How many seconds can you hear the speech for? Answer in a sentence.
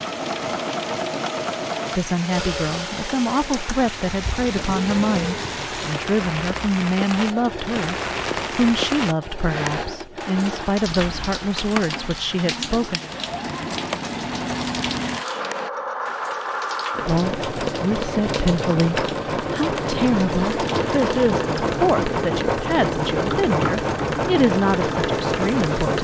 The speech can be heard for 20 seconds in total.